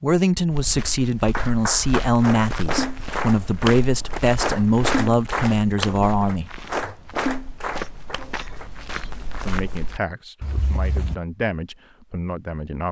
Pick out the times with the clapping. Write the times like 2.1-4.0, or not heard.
1.3-8.7.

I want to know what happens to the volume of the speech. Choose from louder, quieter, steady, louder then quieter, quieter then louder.
quieter.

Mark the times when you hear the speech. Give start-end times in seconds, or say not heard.
0.0-6.5, 9.4-12.8.